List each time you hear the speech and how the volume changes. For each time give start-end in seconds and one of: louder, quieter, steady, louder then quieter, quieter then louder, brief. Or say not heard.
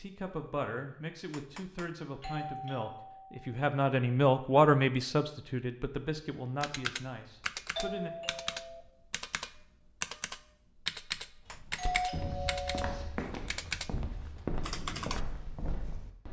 0.0-8.1 louder then quieter.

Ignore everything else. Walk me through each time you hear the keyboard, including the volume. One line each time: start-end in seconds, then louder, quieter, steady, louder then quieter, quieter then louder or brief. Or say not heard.
6.6-15.2 steady.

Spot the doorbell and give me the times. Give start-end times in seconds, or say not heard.
2.2-3.6, 7.8-8.8, 11.8-13.1.